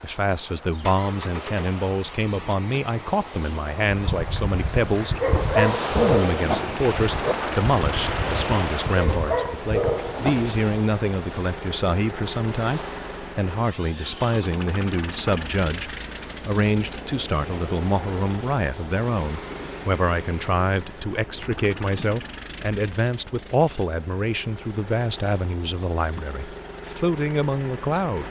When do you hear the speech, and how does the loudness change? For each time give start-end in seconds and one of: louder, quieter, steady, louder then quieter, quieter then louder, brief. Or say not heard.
0.0-28.2 steady.